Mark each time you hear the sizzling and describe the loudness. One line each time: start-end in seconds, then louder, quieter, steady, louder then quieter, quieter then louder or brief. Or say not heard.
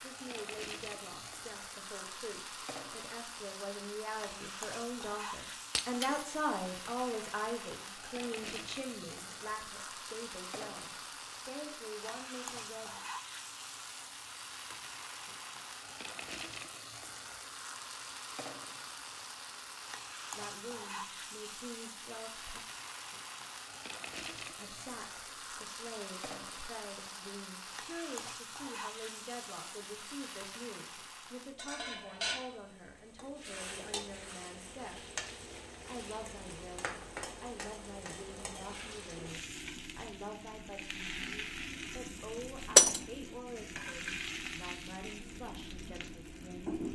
0.0-46.9 steady.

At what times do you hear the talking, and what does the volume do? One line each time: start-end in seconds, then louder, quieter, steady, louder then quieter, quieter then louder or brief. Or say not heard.
0.0-13.0 louder then quieter
20.4-22.6 brief
24.5-46.8 steady.